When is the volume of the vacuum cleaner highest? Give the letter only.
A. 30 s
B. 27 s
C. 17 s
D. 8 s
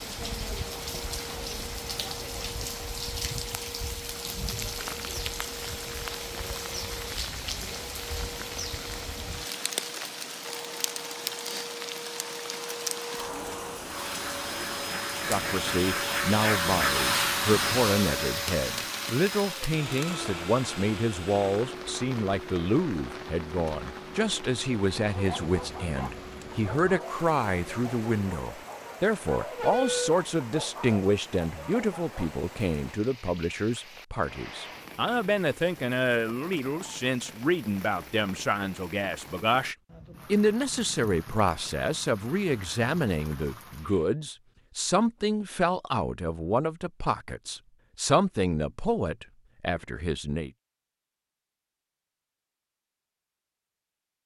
C.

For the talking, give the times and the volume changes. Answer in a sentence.
You can hear the talking from 15.2 to 50.5 s, at a steady volume.